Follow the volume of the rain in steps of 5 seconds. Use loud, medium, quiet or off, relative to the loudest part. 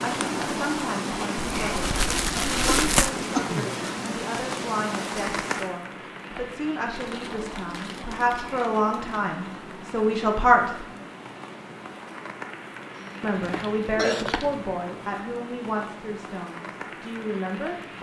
loud, medium, medium, medium.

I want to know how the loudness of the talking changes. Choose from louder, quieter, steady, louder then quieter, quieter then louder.
louder then quieter.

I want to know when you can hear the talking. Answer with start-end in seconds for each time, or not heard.
0.0-10.8, 13.2-17.9.